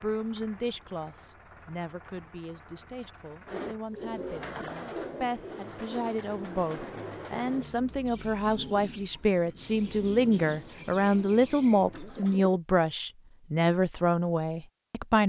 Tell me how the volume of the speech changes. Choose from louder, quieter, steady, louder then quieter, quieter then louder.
louder.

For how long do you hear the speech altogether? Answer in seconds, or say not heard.
15 s.